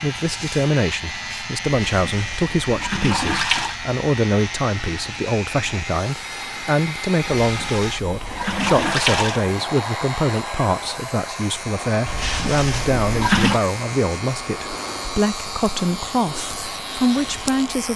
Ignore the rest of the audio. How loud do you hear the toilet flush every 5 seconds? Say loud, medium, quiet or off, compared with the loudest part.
loud, loud, loud, off.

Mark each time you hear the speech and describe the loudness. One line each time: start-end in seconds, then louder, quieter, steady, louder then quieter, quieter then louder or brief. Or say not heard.
0.0-17.9 steady.